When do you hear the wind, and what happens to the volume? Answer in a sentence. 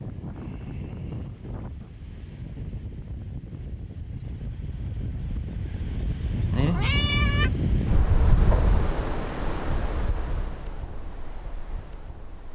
You can hear the wind from 0.0 to 12.4 s, getting louder then quieter.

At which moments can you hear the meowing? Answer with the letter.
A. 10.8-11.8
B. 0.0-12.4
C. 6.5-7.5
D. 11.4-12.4
C.